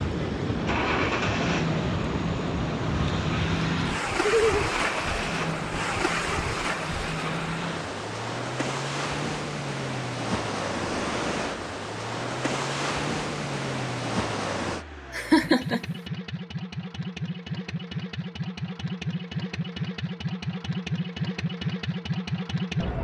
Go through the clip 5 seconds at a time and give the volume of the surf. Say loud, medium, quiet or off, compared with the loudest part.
loud, loud, loud, off, off.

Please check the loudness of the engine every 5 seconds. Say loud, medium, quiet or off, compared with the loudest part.
loud, medium, medium, loud, loud.